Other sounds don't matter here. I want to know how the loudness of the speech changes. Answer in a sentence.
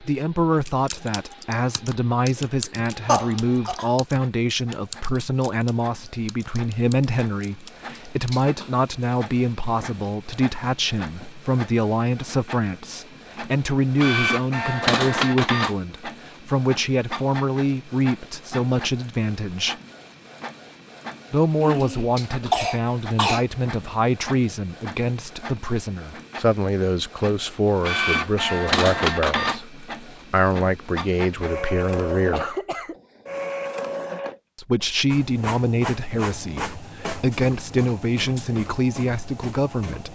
The volume of the speech stays about the same.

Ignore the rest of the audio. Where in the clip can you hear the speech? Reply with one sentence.
The speech can be heard from 0.0 to 19.8 s, from 21.3 to 32.5 s and from 34.5 to 40.1 s.